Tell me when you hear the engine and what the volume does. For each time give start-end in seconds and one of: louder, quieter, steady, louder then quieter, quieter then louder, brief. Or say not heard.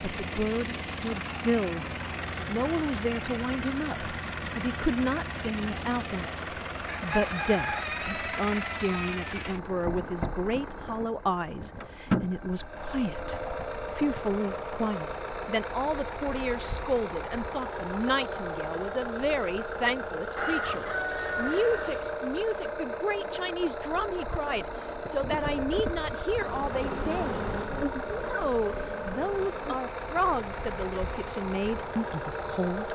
0.0-32.8 steady.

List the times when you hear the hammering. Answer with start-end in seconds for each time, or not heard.
not heard.